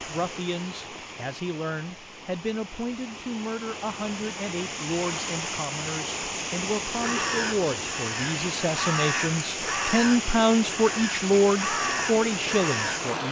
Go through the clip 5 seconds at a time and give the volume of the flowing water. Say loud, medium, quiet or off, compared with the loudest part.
medium, loud, loud.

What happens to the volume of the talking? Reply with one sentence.
The loudness of the talking goes up.